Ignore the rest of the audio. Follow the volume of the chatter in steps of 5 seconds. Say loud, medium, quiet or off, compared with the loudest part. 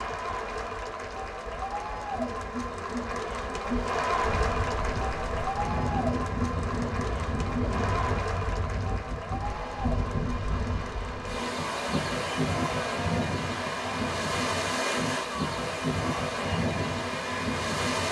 loud, loud, medium, medium.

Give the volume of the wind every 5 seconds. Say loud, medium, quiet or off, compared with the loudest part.
quiet, medium, loud, loud.